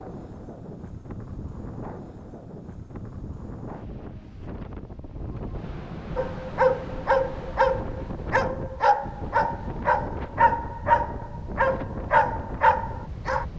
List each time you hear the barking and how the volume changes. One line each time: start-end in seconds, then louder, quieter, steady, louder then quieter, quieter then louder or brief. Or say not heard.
6.2-13.4 steady.